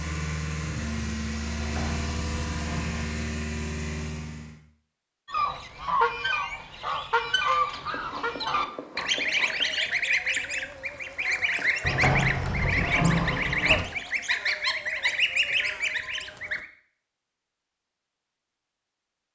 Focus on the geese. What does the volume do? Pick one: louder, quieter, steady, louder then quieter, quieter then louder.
steady.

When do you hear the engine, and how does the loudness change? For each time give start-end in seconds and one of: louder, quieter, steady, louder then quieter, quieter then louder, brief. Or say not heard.
0.0-4.6 steady.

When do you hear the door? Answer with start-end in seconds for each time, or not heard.
1.6-3.1, 11.8-13.8.